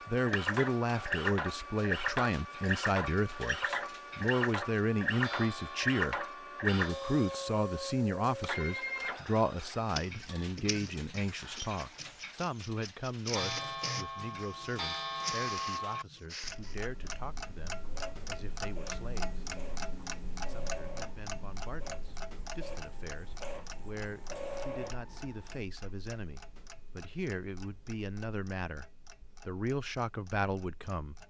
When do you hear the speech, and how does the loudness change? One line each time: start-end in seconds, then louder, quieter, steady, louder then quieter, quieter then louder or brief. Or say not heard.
0.1-19.4 quieter
20.4-28.9 louder
29.4-31.1 brief.